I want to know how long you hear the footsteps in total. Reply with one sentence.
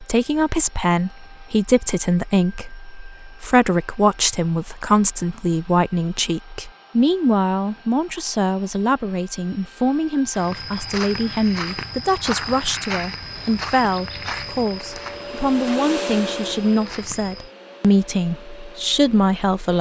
The footsteps can be heard for 7 seconds in total.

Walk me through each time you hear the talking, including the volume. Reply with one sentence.
The talking can be heard from 0.0 to 19.7 s, at a steady volume.